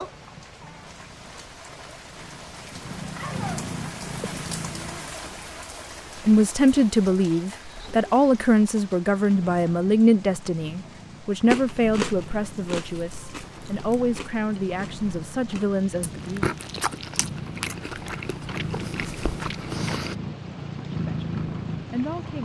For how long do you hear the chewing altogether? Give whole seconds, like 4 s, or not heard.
9 s.